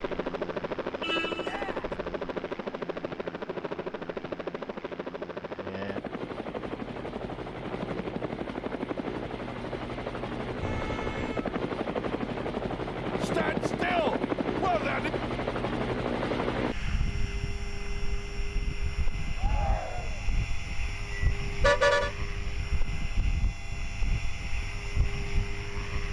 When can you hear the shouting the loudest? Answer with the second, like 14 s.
14 s.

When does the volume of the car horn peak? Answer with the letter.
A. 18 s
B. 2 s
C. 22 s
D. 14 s
C.